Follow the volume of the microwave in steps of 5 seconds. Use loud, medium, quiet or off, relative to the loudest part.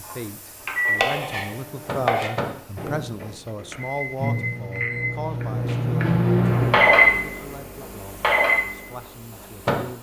medium, loud.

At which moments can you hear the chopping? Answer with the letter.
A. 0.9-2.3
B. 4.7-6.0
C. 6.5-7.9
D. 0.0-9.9
A.